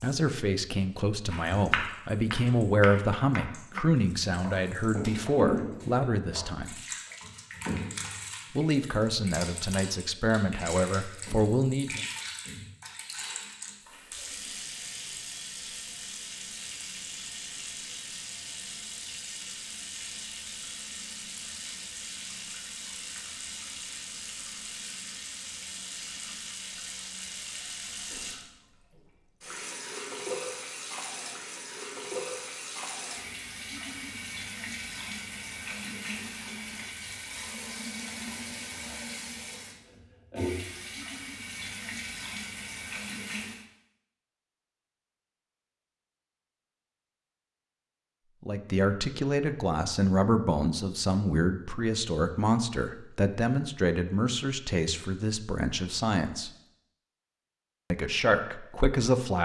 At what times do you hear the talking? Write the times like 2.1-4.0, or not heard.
0.0-6.8, 8.5-12.1, 48.4-56.5, 57.9-59.3.